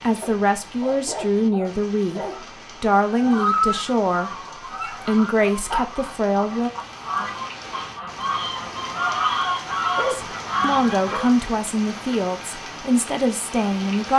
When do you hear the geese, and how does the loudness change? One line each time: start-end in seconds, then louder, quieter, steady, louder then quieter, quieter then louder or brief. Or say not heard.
3.0-11.3 quieter then louder.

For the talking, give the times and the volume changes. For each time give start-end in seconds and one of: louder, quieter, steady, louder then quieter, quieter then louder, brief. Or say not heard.
0.0-2.2 brief
2.8-4.3 brief
4.9-6.7 brief
10.1-14.1 steady.